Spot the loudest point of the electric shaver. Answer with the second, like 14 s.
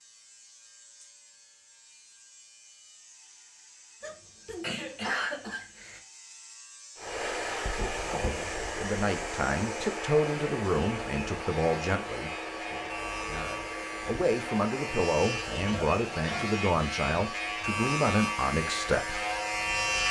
20 s.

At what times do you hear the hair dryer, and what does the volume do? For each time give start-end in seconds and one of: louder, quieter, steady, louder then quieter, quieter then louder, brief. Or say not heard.
7.0-20.0 quieter.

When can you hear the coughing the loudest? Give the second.
5 s.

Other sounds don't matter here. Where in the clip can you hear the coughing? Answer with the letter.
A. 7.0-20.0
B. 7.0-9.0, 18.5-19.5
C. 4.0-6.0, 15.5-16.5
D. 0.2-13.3
C.